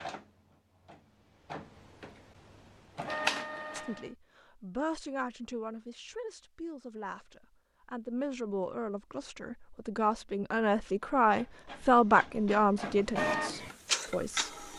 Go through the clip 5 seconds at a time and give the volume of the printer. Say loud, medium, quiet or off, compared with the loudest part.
loud, off, loud.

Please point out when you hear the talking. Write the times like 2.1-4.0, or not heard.
3.7-14.5.